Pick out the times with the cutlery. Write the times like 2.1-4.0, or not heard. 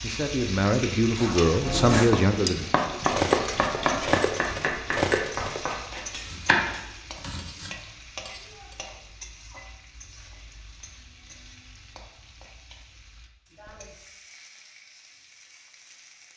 1.1-8.8.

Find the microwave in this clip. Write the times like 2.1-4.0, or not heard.
not heard.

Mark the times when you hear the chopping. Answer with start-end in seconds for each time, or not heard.
1.6-7.7.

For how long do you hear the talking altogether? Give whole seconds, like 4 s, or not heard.
3 s.